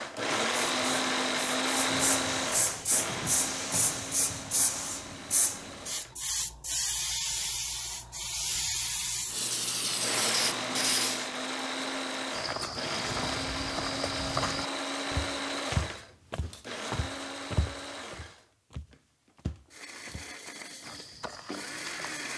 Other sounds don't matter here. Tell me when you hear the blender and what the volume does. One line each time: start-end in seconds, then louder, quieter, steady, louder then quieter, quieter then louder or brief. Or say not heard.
0.0-6.2 quieter
9.8-22.3 quieter.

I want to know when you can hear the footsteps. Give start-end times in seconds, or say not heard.
12.3-22.3.